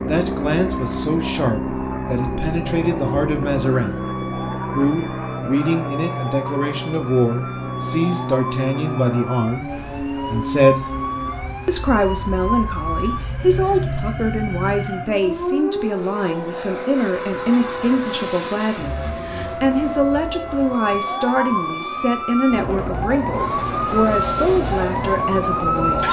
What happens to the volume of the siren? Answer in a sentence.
The loudness of the siren goes up.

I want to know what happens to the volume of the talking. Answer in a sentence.
The volume of the talking stays about the same.